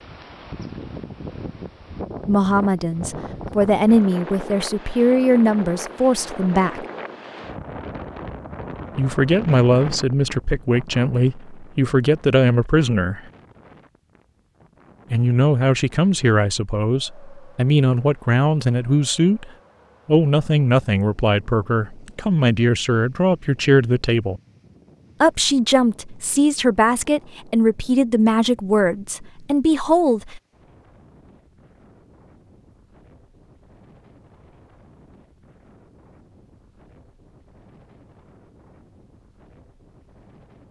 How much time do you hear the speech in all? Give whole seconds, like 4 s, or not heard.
23 s.